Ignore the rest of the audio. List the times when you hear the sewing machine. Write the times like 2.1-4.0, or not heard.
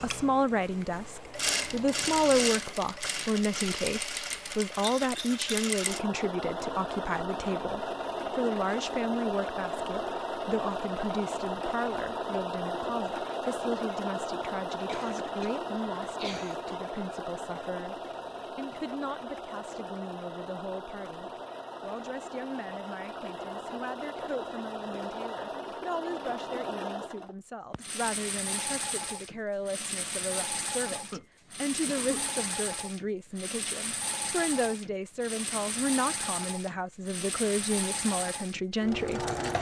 0.0-39.5.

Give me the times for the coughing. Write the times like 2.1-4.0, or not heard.
4.8-5.8, 14.8-16.6, 30.6-31.2, 31.9-32.5.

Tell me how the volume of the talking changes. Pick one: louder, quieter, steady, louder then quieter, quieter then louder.
quieter then louder.